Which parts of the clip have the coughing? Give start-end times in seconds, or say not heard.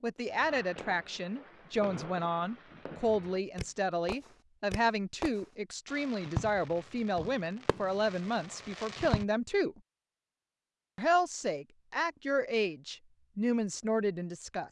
not heard.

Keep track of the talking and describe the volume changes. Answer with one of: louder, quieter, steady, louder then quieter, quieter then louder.
steady.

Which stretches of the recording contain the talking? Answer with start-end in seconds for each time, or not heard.
0.0-9.8, 10.9-14.6.